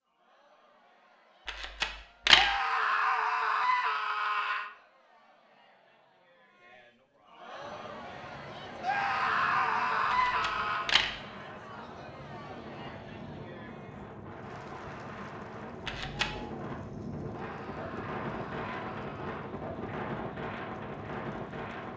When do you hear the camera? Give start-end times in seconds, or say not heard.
1.4-2.5, 10.1-11.1, 15.8-16.3.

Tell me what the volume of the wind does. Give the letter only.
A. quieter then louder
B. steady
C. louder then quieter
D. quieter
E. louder
E.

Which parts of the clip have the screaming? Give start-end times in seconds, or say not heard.
2.3-4.7, 8.8-10.9, 17.4-19.4.